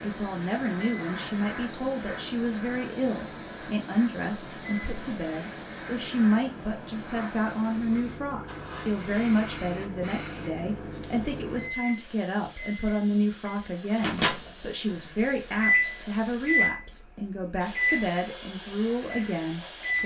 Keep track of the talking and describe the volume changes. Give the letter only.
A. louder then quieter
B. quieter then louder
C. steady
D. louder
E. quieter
C.